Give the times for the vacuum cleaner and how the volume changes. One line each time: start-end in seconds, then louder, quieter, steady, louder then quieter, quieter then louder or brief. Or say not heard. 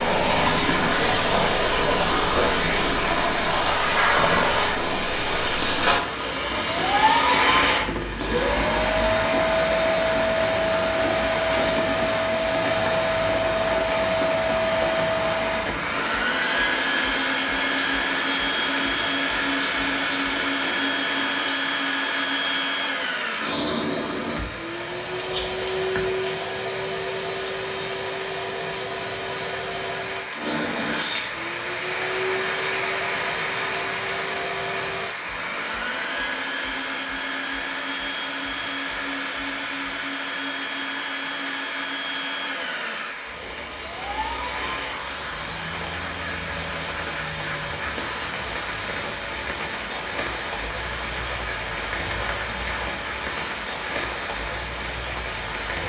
0.0-55.8 quieter.